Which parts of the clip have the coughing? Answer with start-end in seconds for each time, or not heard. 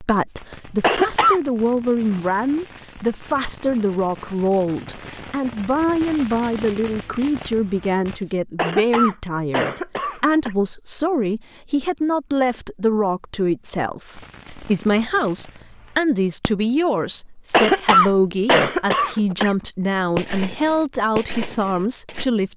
0.8-1.4, 8.6-10.6, 17.5-19.5.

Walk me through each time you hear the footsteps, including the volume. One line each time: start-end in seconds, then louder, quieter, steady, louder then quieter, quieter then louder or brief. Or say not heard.
not heard.